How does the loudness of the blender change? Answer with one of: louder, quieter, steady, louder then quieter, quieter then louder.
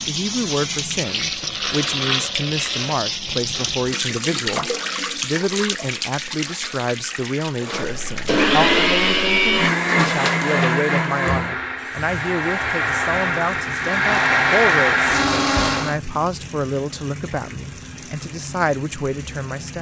quieter then louder.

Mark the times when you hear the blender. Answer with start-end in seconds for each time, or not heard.
7.7-15.9.